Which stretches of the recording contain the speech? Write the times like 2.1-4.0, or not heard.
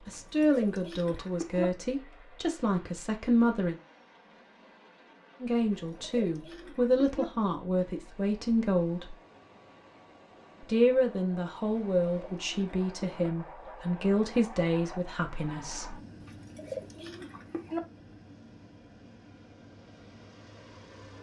0.1-3.8, 5.4-9.2, 10.6-15.9.